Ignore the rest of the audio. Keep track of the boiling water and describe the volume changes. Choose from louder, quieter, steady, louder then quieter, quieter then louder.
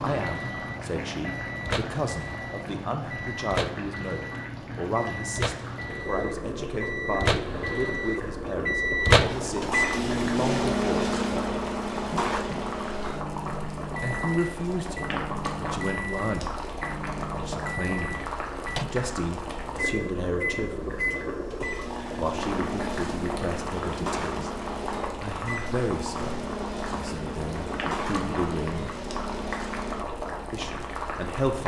steady.